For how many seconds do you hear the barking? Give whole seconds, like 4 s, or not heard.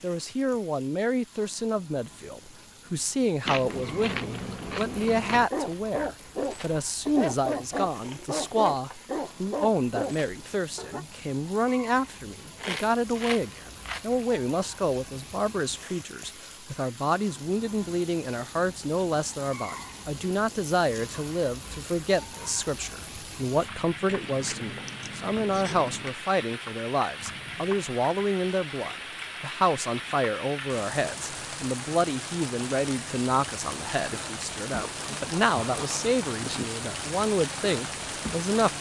6 s.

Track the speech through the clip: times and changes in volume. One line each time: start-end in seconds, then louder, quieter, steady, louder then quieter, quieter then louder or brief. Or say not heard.
0.0-38.7 steady.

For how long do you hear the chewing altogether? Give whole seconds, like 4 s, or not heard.
7 s.